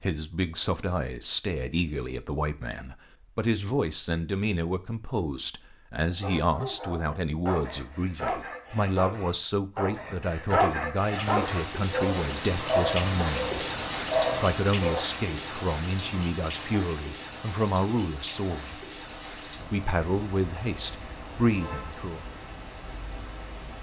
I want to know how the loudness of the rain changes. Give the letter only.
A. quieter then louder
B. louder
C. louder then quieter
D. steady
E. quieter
E.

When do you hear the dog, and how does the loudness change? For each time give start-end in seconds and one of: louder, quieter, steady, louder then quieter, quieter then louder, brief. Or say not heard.
6.2-15.0 louder.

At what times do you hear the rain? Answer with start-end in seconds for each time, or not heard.
11.1-23.7.